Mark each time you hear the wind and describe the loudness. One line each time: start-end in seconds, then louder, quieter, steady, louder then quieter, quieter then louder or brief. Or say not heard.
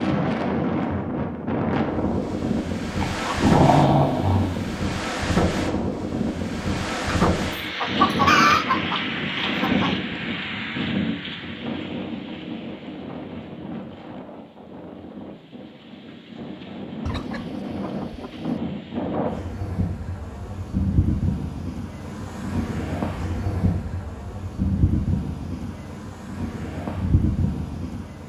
0.0-28.2 quieter then louder.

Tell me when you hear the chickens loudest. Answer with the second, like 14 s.
8 s.